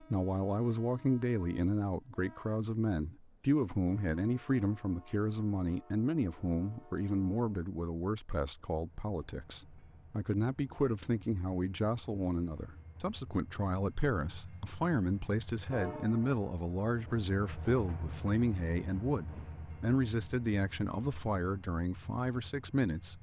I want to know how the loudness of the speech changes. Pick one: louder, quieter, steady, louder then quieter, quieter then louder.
steady.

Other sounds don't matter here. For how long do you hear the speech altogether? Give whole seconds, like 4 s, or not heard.
23 s.